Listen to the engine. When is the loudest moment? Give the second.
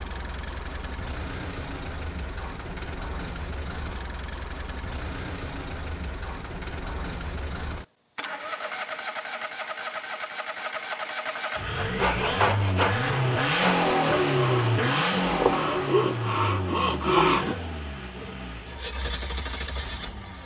14 s.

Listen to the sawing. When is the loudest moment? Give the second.
17 s.